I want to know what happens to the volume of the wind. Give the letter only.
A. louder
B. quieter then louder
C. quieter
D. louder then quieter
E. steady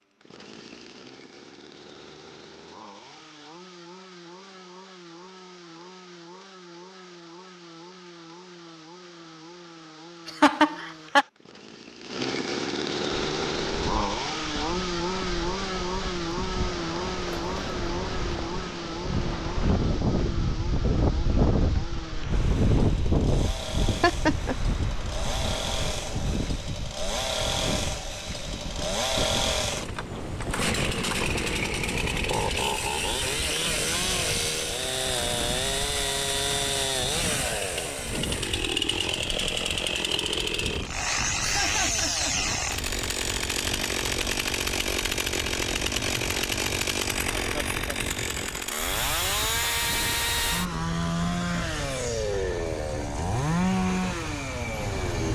C.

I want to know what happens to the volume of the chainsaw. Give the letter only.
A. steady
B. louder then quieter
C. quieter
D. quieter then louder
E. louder
E.